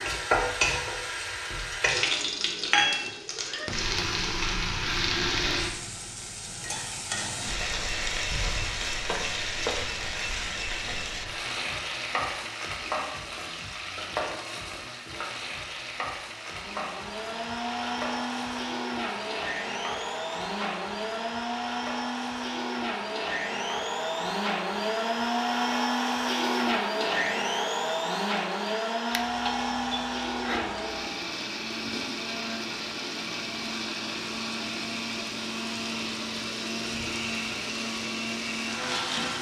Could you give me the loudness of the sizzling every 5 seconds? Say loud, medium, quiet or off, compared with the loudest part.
loud, loud, medium, medium, quiet, quiet, quiet, medium.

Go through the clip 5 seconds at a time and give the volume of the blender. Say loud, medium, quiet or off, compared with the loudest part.
off, off, off, medium, loud, loud, medium, medium.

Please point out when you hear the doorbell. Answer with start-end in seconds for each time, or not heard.
29.1-31.1.